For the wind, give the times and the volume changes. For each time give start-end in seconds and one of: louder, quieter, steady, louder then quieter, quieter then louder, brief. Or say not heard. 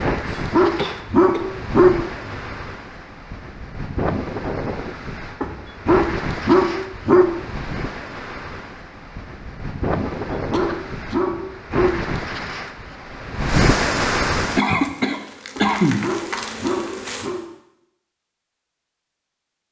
0.0-14.6 louder.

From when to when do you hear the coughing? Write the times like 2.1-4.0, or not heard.
0.2-1.4, 10.3-11.3, 14.6-16.1.